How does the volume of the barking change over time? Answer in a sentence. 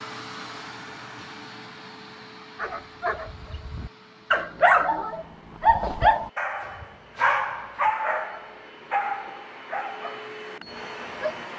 The loudness of the barking goes up, then down.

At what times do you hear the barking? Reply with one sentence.
The barking can be heard from 2.5 to 11.5 s.